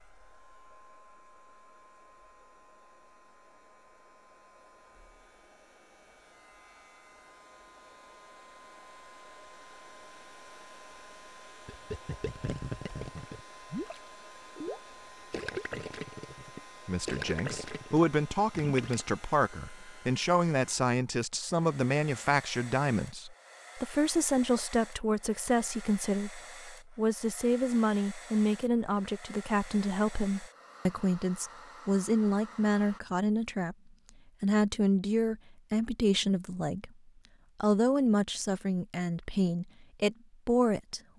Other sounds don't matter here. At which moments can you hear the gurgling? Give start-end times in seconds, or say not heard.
11.7-19.1.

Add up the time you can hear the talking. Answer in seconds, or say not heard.
23 s.